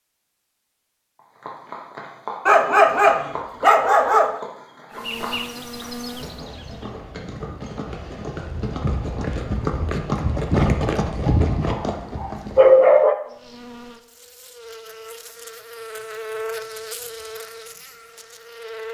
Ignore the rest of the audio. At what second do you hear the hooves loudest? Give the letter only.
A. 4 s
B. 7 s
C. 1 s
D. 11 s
D.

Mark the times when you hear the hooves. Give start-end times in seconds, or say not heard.
1.1-12.7.